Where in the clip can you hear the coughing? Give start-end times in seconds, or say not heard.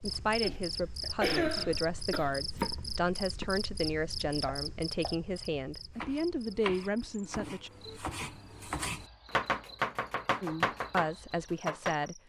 0.4-2.4.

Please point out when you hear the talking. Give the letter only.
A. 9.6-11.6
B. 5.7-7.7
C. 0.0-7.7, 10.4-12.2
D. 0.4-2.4
C.